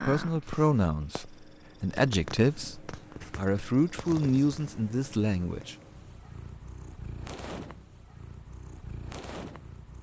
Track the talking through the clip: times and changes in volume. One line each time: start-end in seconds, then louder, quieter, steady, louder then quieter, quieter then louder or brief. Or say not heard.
0.0-5.8 steady.